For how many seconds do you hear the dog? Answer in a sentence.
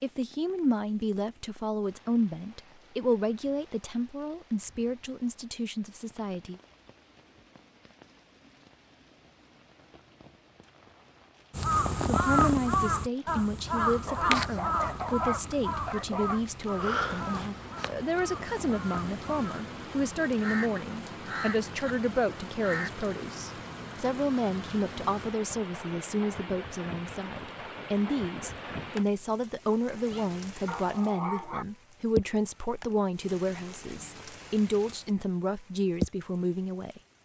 The dog can be heard for 4 seconds in total.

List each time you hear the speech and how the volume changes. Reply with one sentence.
The speech can be heard from 0.0 to 6.6 s, getting quieter; and from 12.1 to 37.0 s, at a steady volume.